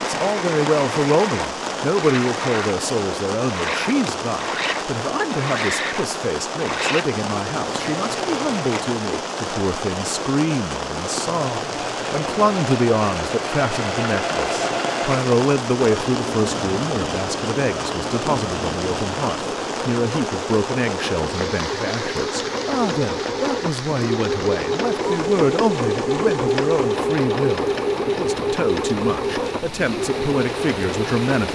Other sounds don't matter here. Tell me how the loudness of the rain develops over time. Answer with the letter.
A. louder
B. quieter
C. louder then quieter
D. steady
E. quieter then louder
B.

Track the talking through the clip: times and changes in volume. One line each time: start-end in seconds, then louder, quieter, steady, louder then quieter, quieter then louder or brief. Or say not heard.
0.0-31.5 steady.